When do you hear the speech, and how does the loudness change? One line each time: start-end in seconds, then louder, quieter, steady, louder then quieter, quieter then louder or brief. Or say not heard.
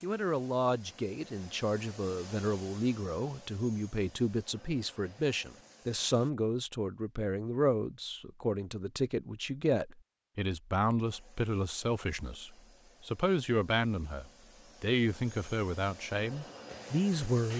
0.0-17.5 steady.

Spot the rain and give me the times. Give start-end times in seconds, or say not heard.
not heard.